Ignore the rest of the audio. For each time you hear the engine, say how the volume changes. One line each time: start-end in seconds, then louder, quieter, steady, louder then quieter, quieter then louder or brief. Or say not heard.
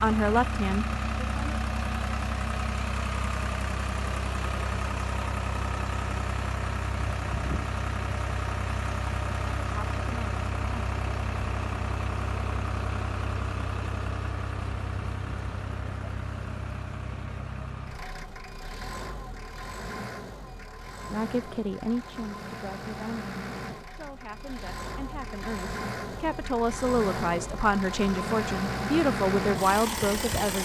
0.0-30.5 quieter then louder.